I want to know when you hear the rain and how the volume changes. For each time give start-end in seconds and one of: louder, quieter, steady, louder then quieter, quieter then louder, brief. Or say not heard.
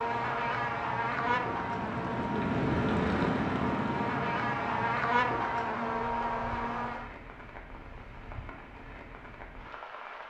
0.0-10.2 louder then quieter.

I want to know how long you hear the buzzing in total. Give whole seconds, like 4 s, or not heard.
7 s.